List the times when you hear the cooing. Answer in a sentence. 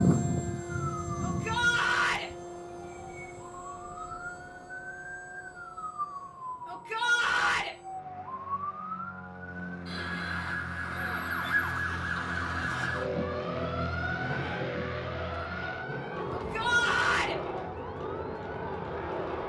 The cooing can't be heard in this clip.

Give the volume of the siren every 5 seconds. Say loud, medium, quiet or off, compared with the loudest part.
medium, medium, loud, medium.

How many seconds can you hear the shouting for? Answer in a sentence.
The shouting can be heard for 3 seconds in total.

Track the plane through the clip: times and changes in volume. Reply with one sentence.
You can hear the plane from 0.0 to 19.4 s, getting quieter then louder.